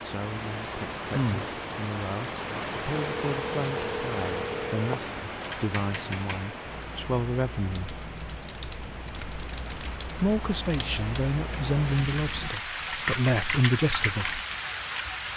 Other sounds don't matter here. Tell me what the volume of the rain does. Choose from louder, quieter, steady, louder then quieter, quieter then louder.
quieter then louder.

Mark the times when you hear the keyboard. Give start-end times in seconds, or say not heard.
5.4-14.4.